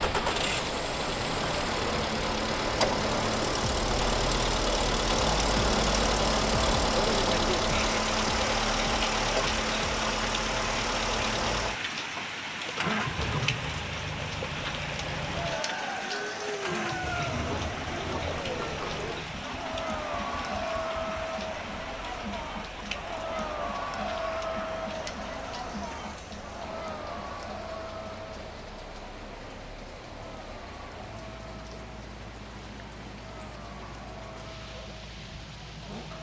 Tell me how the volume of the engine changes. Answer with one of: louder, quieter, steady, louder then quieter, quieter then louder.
quieter.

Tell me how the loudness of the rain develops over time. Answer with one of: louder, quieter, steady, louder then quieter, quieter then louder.
quieter.